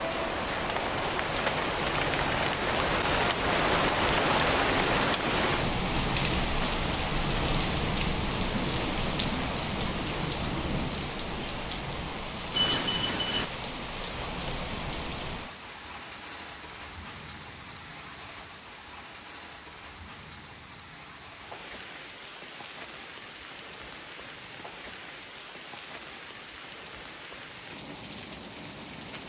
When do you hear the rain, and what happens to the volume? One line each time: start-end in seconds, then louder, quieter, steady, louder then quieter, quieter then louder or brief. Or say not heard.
0.0-29.2 quieter.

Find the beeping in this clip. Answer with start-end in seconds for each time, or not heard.
12.5-13.4.